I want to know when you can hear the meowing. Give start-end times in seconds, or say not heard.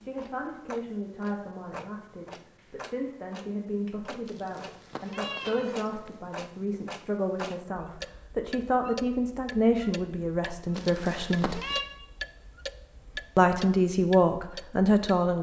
4.2-6.1, 10.8-11.8.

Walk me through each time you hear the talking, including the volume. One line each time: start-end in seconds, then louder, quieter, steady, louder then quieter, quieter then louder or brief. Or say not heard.
0.0-11.6 louder
13.3-15.3 brief.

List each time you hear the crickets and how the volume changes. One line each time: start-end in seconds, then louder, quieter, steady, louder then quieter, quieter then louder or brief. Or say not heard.
not heard.